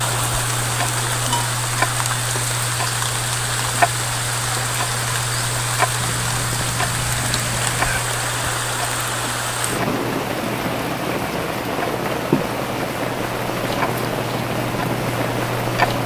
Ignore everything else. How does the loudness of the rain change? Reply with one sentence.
The volume of the rain stays about the same.